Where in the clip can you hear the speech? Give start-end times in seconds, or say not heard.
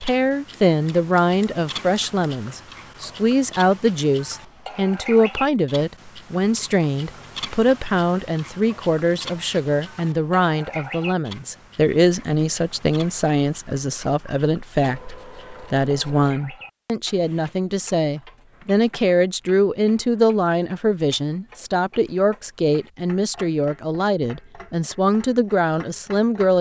0.0-26.5.